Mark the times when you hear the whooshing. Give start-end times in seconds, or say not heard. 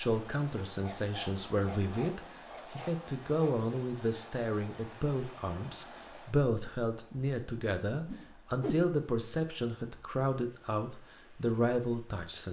8.1-8.9.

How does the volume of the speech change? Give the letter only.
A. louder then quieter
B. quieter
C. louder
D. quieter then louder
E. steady
E.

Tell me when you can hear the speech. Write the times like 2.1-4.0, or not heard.
0.0-12.4.